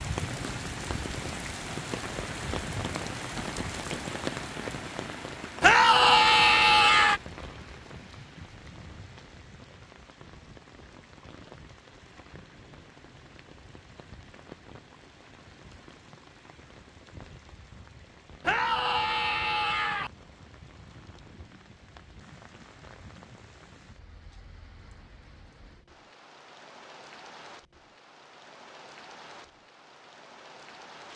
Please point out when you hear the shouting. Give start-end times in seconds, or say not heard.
5.6-7.2, 18.4-20.1.